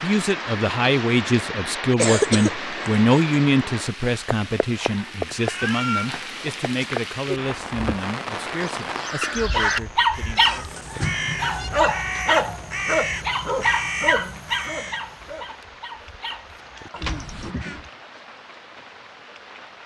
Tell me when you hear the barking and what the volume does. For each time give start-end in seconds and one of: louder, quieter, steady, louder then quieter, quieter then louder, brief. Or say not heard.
9.5-17.5 quieter.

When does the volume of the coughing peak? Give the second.
2 s.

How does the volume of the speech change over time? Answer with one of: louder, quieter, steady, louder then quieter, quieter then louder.
quieter.